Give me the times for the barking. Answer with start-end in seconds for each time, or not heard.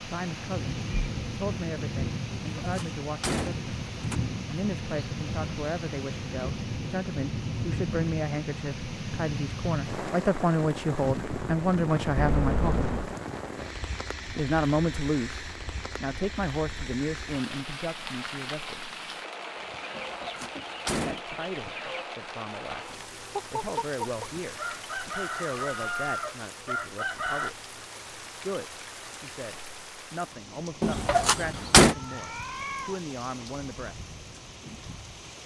not heard.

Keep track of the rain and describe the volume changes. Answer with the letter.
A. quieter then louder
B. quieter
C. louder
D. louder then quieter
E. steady
B.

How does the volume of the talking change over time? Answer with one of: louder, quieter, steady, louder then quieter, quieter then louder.
louder then quieter.